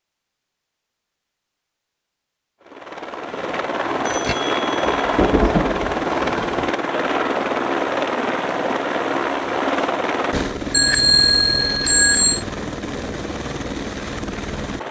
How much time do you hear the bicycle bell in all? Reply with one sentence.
The bicycle bell can be heard for 3 seconds in total.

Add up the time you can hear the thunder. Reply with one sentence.
You can hear the thunder for 2 seconds altogether.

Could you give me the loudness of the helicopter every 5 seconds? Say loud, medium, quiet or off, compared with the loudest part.
loud, loud, medium.